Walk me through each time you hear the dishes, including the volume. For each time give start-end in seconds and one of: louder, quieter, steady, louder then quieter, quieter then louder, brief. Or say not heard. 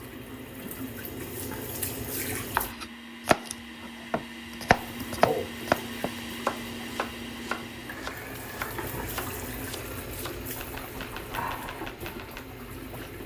not heard.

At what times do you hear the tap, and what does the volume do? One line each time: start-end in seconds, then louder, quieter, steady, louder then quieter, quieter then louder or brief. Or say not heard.
0.0-2.8 brief
4.7-13.2 quieter then louder.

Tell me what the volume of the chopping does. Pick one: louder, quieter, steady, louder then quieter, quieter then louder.
quieter.